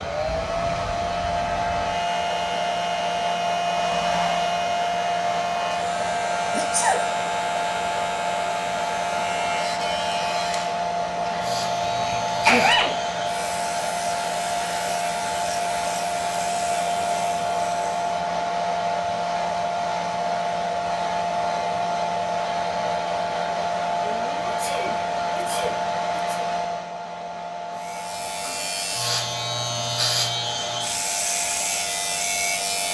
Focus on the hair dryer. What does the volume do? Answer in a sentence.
The loudness of the hair dryer goes down.